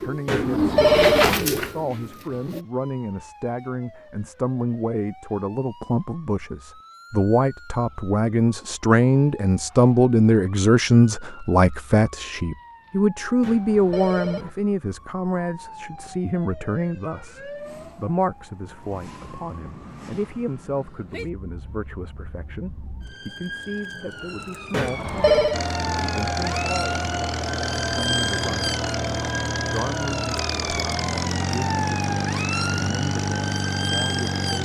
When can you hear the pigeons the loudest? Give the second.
1 s.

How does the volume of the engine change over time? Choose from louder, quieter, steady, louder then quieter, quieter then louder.
steady.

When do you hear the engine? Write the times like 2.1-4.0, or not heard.
25.5-34.6.